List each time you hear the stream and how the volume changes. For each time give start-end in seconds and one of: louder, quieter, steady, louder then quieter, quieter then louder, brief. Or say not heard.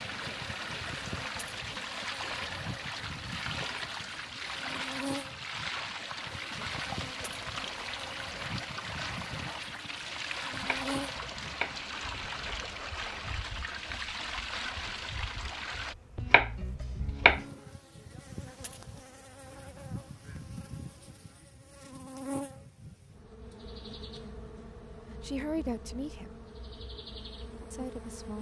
0.0-15.9 steady.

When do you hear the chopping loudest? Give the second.
17 s.